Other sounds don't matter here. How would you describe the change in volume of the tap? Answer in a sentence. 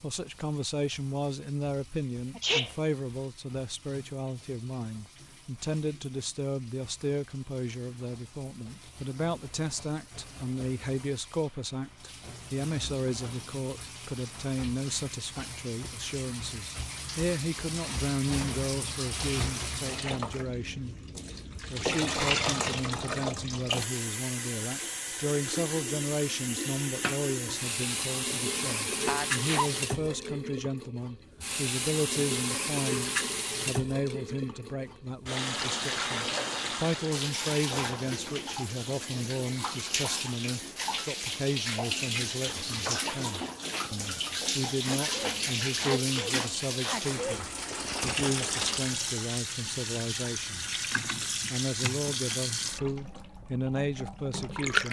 The loudness of the tap goes up.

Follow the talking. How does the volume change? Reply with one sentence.
The volume of the talking stays about the same.